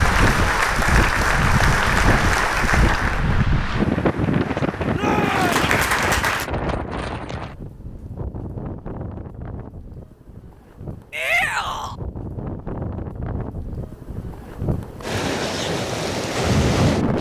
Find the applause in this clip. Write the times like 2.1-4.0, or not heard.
0.0-6.5.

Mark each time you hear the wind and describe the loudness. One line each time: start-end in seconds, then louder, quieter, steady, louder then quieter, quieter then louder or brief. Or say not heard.
0.0-17.1 quieter then louder.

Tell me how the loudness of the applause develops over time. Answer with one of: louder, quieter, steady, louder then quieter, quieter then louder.
quieter then louder.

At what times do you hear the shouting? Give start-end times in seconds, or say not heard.
4.9-5.5, 11.1-11.9.